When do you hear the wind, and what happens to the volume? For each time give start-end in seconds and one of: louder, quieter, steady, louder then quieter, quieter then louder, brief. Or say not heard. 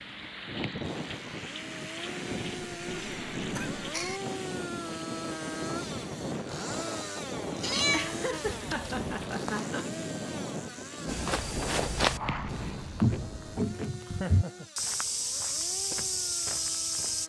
0.0-13.8 steady.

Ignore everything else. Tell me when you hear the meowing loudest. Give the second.
8 s.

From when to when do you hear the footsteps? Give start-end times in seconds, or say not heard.
11.1-17.2.